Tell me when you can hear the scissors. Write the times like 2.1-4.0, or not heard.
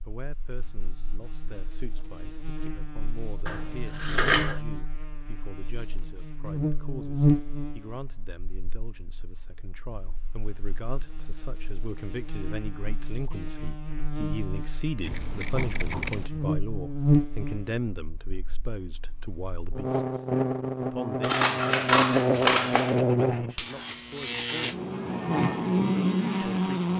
3.5-4.6, 15.0-16.3, 21.2-23.0.